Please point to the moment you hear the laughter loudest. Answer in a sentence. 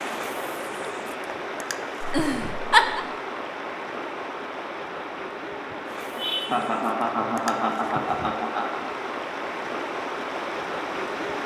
The loudest moment of the laughter is at 3 seconds.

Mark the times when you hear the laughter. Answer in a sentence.
The laughter can be heard from 2.0 to 3.0 s and from 6.2 to 8.8 s.